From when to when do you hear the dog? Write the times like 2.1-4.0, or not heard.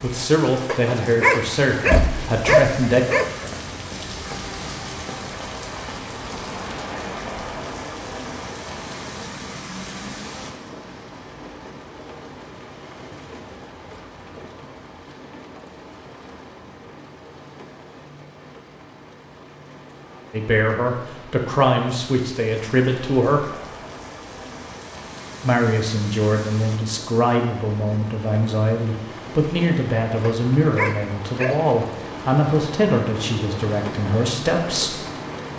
0.7-3.5, 30.2-31.8.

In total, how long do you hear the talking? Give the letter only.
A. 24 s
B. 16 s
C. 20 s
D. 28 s
B.